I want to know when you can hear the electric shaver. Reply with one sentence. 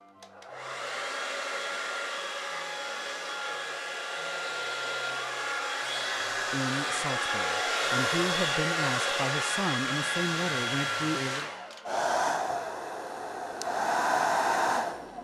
You can't hear the electric shaver here.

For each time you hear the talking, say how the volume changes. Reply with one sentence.
The talking can be heard from 6.5 to 11.5 s, getting louder.